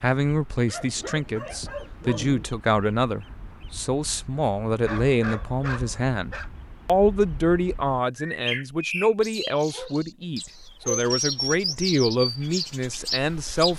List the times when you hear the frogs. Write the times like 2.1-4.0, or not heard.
not heard.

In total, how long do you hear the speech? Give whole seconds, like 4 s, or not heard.
14 s.